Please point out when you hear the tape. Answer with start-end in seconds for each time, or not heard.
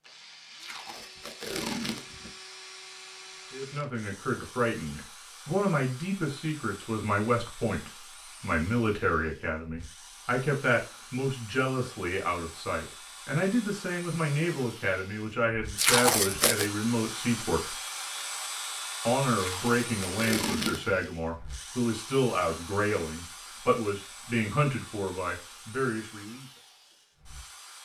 0.6-2.3, 15.8-16.7, 19.4-21.0.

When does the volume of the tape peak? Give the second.
16 s.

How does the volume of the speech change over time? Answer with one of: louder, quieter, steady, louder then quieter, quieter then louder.
steady.